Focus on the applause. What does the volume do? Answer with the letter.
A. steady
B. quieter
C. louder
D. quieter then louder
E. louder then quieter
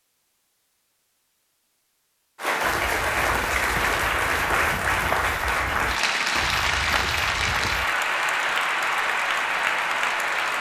A.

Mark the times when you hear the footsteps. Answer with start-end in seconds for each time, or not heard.
2.6-7.9.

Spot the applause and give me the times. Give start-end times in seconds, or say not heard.
2.4-10.5.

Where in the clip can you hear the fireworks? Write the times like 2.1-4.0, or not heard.
not heard.